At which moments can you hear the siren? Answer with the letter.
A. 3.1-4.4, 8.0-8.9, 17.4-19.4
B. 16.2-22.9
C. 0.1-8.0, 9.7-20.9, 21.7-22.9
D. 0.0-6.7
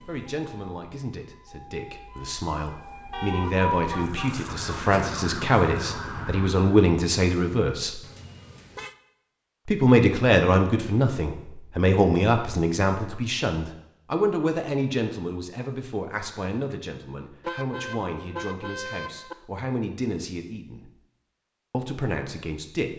D.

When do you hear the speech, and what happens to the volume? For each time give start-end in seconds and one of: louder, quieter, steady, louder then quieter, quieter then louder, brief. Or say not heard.
0.1-8.0 louder
9.7-20.9 quieter
21.7-22.9 brief.